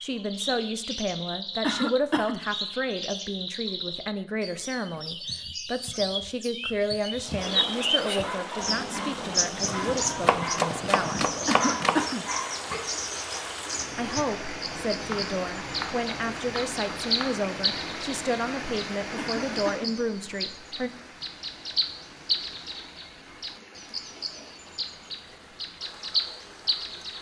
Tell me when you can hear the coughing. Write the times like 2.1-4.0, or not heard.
1.6-2.5, 11.4-12.2, 19.1-19.9.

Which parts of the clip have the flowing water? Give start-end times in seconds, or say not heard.
7.2-27.1.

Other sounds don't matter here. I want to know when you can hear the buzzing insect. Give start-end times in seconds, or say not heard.
not heard.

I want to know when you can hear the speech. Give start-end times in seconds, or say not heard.
0.0-11.2, 13.9-20.9.